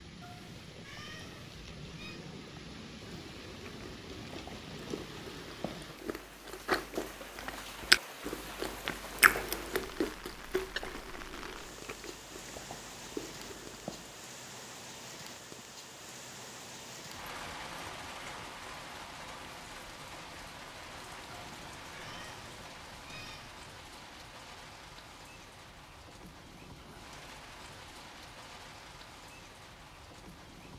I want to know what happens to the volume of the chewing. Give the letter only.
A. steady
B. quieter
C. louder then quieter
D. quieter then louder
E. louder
C.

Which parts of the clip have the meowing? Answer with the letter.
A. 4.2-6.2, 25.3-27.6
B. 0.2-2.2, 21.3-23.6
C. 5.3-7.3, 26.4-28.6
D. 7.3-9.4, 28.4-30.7
B.